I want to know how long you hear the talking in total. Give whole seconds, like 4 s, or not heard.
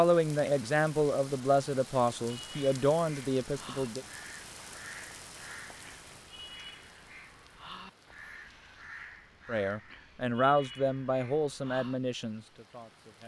8 s.